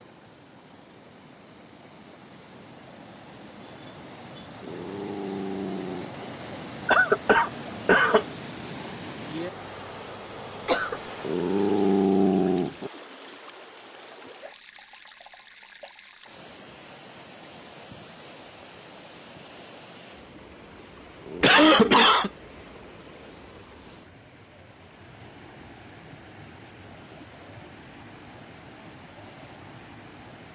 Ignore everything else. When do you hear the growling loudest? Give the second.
12 s.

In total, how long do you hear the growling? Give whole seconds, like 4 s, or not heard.
4 s.